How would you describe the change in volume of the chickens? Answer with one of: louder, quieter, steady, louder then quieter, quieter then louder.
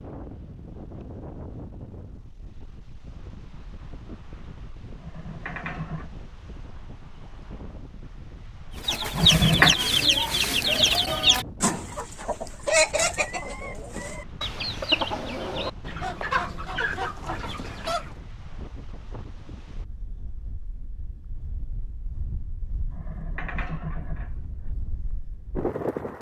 quieter.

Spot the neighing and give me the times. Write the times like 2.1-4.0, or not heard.
5.0-6.1, 9.1-9.8, 22.9-24.8.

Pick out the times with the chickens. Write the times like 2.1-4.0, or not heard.
8.8-18.1.